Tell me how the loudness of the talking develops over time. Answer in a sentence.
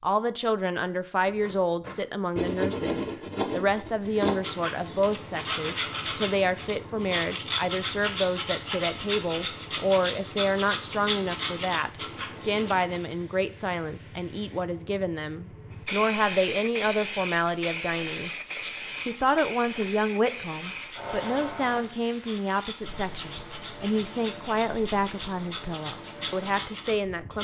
The volume of the talking stays about the same.